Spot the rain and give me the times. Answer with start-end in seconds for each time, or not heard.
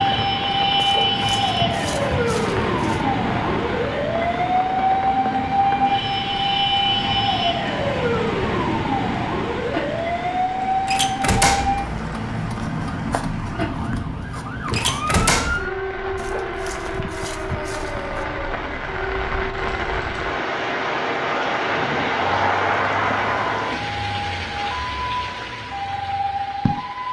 0.0-27.0.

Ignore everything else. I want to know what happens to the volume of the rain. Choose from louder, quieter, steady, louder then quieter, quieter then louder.
louder.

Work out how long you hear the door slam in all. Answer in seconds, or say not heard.
2 s.